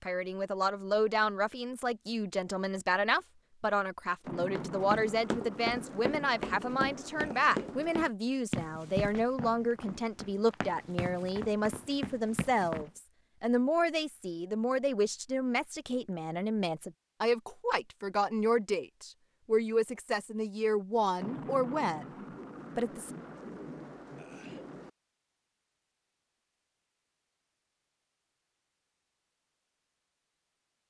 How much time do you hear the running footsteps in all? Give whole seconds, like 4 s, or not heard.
8 s.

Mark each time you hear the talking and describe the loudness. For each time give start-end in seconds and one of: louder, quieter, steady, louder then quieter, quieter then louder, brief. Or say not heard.
0.0-23.1 steady.